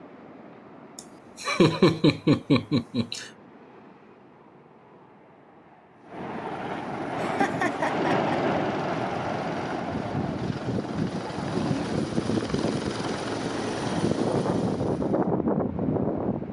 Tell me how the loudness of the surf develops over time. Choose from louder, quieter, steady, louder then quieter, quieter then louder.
louder.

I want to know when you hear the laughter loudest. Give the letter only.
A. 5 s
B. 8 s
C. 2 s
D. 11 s
C.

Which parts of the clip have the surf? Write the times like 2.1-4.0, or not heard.
0.0-16.4.